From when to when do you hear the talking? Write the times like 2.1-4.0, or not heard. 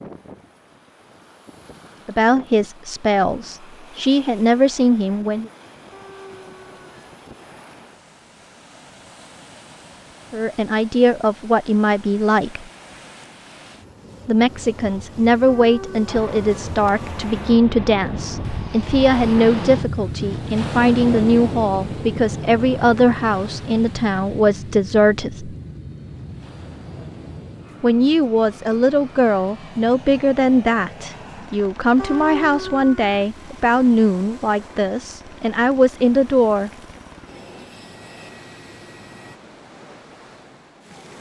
2.0-5.5, 10.3-12.7, 14.2-25.6, 27.8-36.7.